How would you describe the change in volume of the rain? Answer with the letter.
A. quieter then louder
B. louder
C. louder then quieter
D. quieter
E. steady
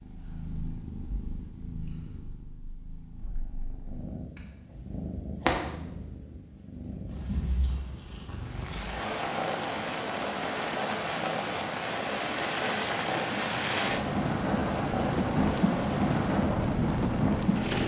B.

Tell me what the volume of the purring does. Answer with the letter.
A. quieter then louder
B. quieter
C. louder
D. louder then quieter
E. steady
C.